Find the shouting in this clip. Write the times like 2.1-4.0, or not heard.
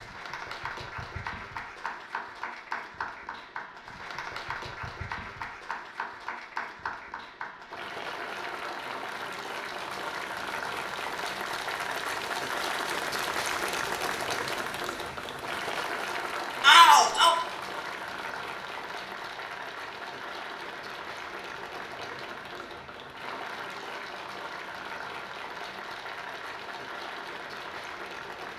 16.6-17.4.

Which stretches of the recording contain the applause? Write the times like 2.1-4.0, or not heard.
0.0-28.5.